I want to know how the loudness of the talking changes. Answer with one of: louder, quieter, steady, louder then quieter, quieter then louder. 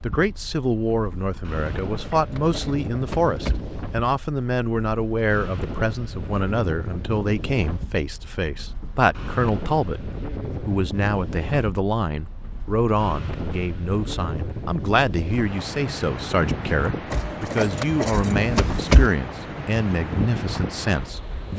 steady.